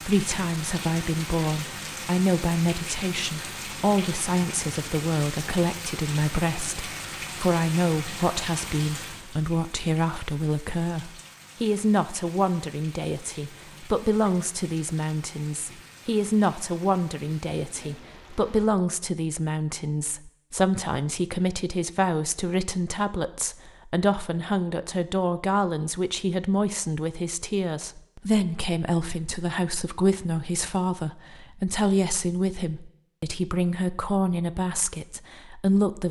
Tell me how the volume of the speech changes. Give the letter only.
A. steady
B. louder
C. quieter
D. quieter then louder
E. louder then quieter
A.